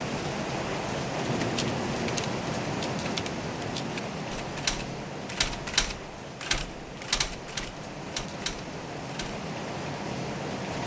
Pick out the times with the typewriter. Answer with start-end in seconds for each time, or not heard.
1.2-9.4.